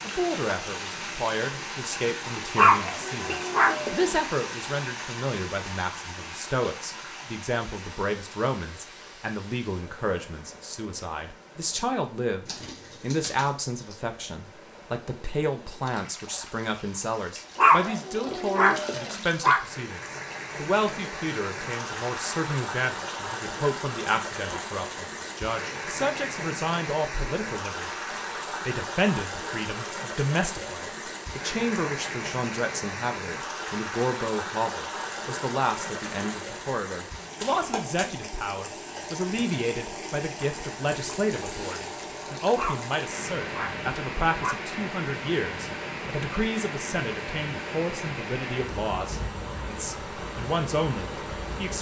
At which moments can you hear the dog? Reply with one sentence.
You can hear the dog from 2.5 to 4.1 s, from 17.6 to 19.6 s and from 42.5 to 44.5 s.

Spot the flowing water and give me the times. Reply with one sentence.
You can hear the flowing water from 0.0 to 51.7 s.